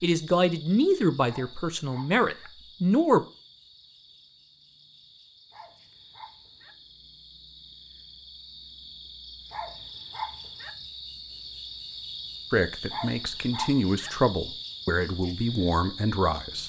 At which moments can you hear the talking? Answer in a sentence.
You can hear the talking from 0.0 to 3.2 s and from 12.5 to 16.6 s.